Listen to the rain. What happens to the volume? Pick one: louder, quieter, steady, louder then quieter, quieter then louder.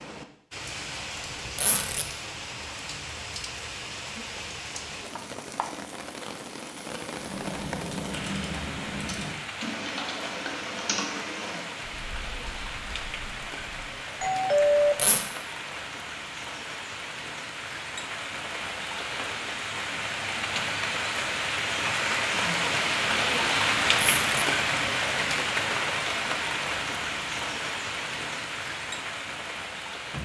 louder.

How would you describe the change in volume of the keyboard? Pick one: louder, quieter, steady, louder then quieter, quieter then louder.
quieter.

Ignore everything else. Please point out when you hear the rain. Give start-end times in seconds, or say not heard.
0.0-30.1.